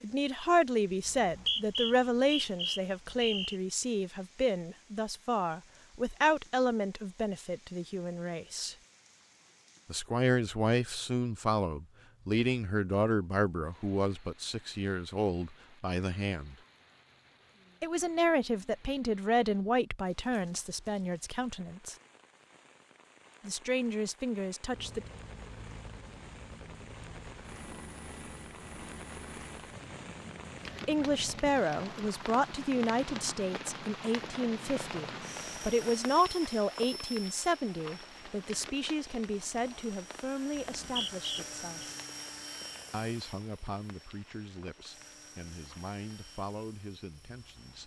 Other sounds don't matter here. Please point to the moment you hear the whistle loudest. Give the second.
2 s.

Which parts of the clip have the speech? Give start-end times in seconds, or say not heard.
0.0-8.8, 9.9-16.6, 17.8-21.9, 23.4-25.1, 30.9-41.8, 42.9-47.8.